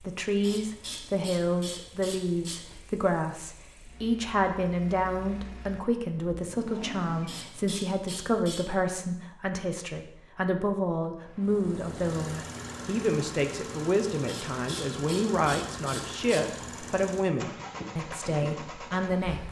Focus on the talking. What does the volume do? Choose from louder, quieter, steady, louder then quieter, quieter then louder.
steady.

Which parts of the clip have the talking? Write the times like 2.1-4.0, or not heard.
0.0-19.4.